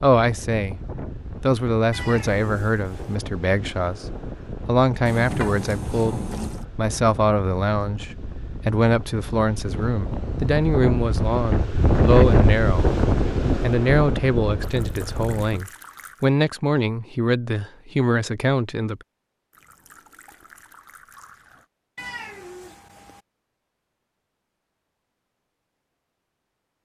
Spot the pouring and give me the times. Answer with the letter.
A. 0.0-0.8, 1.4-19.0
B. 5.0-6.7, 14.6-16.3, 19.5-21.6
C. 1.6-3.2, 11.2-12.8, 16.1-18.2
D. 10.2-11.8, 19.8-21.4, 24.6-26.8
B.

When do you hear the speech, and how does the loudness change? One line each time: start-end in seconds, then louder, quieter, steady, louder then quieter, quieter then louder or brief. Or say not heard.
0.0-0.8 brief
1.4-19.0 steady.